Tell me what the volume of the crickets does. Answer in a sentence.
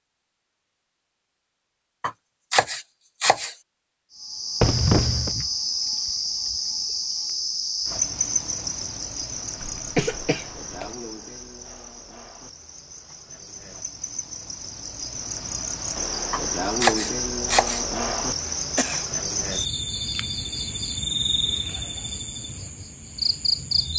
The volume of the crickets goes down, then up.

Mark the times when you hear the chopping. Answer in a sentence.
The chopping can be heard from 2.0 to 3.5 s and from 16.3 to 17.9 s.